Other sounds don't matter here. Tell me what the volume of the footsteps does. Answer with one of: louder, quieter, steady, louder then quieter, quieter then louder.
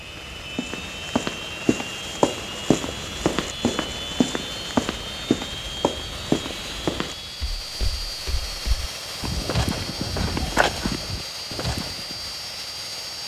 quieter then louder.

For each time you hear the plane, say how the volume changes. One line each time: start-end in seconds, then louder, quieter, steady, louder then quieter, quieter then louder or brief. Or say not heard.
0.0-13.2 steady.